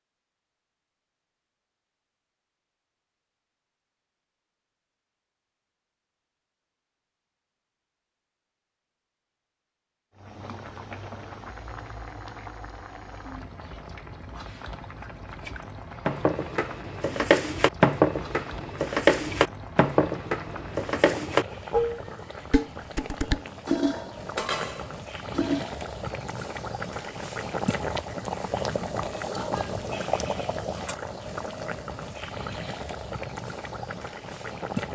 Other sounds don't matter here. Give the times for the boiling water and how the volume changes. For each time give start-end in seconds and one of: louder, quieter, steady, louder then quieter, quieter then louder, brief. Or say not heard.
10.2-34.9 louder.